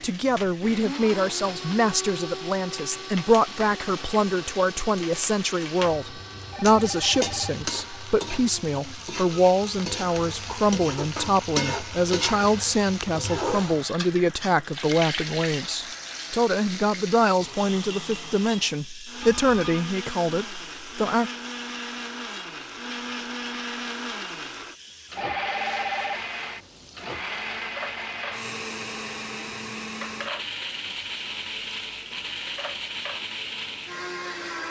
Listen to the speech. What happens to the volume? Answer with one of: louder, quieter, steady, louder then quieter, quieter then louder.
steady.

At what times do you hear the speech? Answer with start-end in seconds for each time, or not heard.
0.0-21.3.